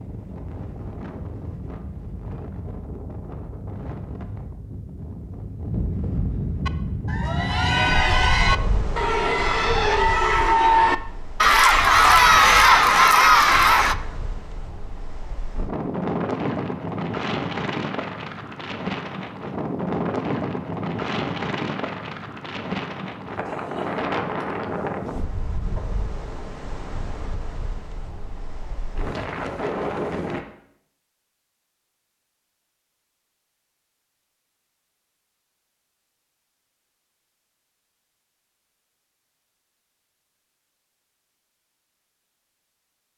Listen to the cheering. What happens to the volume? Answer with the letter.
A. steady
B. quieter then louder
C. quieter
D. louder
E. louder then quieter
D.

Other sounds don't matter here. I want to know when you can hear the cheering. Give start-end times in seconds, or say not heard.
6.7-13.9.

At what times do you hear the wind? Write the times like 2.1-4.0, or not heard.
0.0-30.4.